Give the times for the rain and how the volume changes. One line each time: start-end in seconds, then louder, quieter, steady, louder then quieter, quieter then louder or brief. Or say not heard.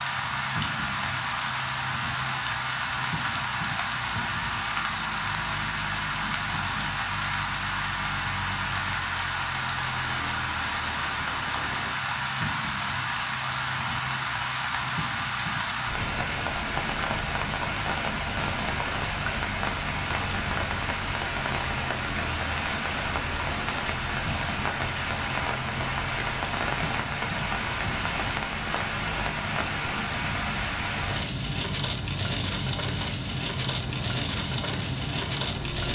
0.0-35.9 steady.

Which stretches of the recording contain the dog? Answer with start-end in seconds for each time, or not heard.
not heard.